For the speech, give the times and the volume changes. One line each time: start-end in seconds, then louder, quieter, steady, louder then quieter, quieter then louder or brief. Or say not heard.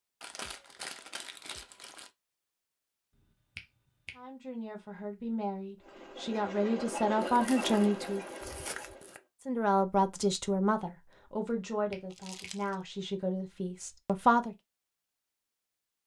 4.2-8.2 louder
9.4-14.6 quieter.